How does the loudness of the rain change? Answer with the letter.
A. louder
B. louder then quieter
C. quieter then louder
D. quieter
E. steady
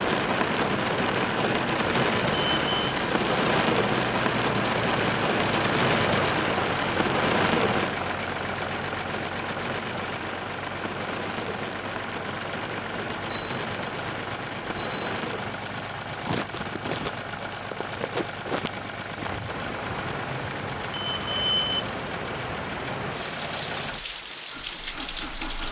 D.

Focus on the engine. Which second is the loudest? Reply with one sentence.
The loudest moment of the engine is at 6 seconds.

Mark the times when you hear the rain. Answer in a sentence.
You can hear the rain from 0.0 to 25.6 s.